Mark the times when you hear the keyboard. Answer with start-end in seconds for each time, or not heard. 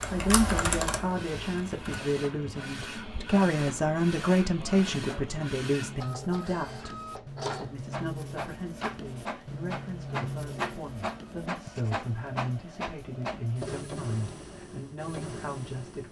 0.0-2.0.